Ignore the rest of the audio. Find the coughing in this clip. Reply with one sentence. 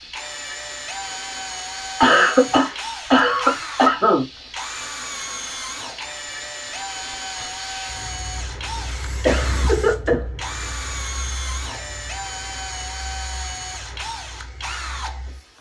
You can hear the coughing from 2.0 to 4.2 s and from 9.2 to 10.5 s.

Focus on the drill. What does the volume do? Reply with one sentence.
The volume of the drill stays about the same.